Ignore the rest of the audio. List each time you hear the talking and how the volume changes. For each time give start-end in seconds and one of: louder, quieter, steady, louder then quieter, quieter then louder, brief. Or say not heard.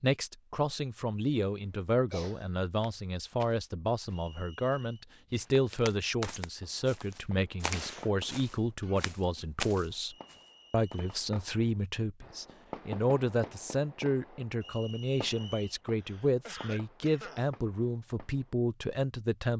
0.0-19.5 steady.